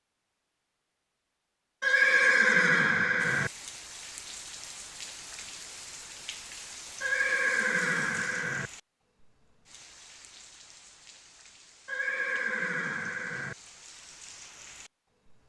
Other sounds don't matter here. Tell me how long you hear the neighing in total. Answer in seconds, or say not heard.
5 s.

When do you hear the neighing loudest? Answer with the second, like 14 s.
2 s.